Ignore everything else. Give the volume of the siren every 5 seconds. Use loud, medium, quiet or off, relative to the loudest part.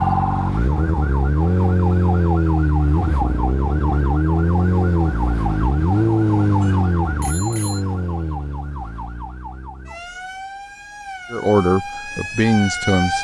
loud, loud, medium.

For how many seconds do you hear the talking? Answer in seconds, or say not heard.
2 s.